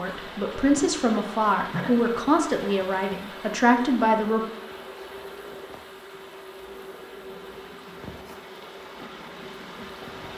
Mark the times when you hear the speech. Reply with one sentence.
The speech can be heard from 0.0 to 4.4 s.